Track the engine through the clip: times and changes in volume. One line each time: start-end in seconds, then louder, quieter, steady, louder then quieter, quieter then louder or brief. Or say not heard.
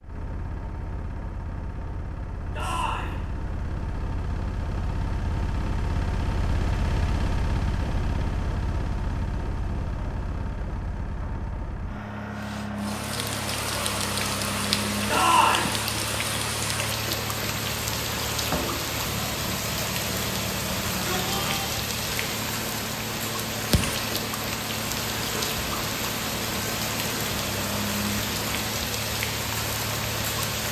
0.0-30.6 steady.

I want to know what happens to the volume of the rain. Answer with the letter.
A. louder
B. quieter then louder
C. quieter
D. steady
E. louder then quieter
D.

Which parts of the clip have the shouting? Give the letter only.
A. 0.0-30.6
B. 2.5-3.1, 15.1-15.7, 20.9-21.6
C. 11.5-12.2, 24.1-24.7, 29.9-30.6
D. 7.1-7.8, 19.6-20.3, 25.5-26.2
B.